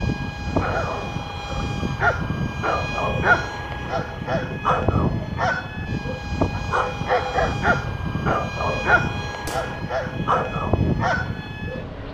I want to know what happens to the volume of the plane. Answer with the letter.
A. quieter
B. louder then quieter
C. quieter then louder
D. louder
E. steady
E.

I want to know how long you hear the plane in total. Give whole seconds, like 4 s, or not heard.
12 s.